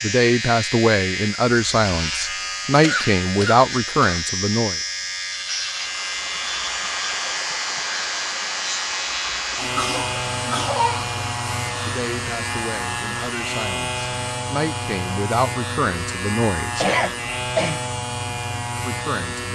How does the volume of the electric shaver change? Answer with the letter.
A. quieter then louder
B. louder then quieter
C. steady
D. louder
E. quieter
C.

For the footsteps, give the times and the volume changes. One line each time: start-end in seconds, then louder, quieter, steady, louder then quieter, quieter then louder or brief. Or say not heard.
not heard.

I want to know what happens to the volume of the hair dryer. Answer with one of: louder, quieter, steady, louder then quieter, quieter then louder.
quieter.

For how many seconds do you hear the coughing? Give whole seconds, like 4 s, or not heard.
4 s.